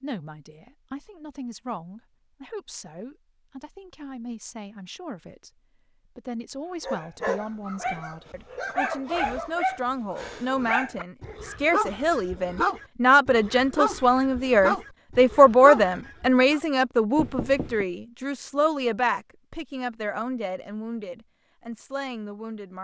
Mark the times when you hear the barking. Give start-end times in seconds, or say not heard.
6.8-16.6.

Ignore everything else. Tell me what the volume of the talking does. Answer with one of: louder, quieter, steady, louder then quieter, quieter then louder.
louder then quieter.